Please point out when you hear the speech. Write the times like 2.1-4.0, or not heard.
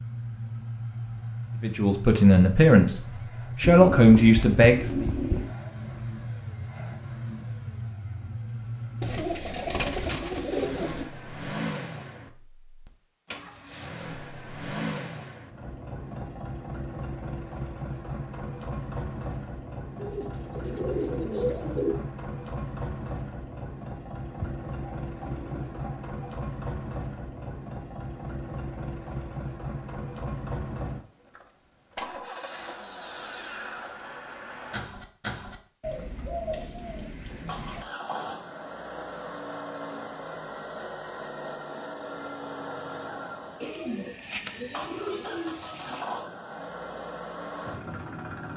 1.6-5.1.